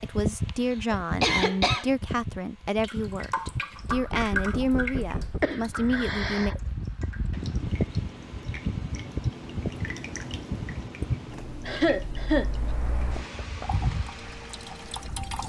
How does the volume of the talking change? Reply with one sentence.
The volume of the talking stays about the same.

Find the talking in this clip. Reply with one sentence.
The talking can be heard from 0.0 to 6.5 s.